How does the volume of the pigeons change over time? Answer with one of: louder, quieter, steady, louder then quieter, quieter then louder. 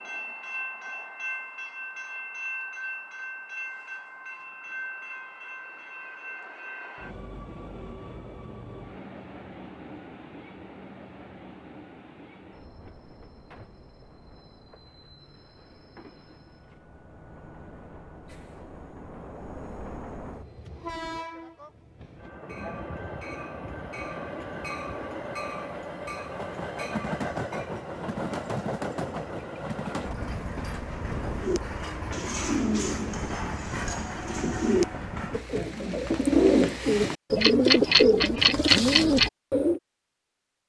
louder.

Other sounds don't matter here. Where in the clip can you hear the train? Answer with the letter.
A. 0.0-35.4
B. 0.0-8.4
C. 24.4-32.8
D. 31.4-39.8
A.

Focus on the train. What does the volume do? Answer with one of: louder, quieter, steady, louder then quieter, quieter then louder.
quieter then louder.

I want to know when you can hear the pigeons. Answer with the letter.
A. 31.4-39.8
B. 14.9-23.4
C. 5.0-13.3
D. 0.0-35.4
A.